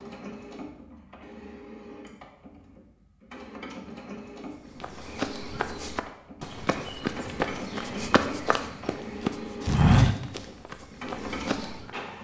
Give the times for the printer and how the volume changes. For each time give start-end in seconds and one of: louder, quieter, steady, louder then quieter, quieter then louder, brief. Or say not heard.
0.0-12.1 louder.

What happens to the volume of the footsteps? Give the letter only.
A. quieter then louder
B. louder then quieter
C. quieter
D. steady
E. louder
B.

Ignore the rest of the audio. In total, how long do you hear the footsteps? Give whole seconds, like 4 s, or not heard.
7 s.